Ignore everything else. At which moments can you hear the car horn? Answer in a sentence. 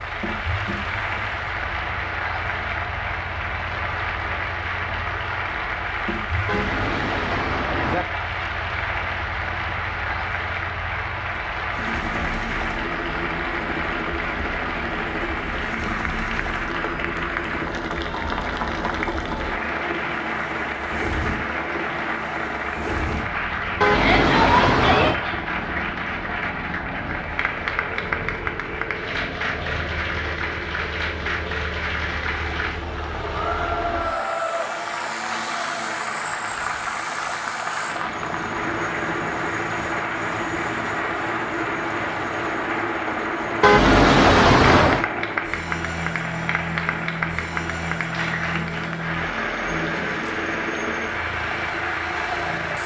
The car horn can be heard from 6.5 to 8.1 s, from 23.8 to 25.2 s and from 43.6 to 45.0 s.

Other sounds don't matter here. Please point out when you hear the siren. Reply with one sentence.
You can't hear the siren here.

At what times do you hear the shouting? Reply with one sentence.
You can hear the shouting from 23.9 to 25.4 s.